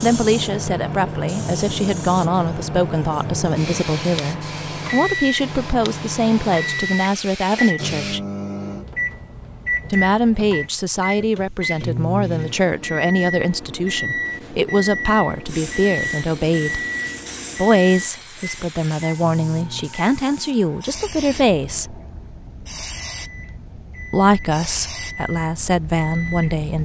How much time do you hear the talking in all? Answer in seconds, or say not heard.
22 s.